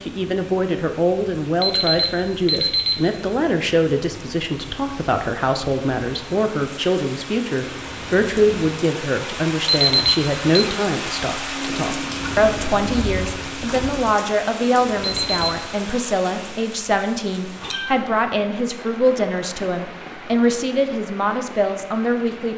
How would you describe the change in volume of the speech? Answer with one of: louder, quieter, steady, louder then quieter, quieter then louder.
steady.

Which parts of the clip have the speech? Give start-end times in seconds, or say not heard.
0.0-22.5.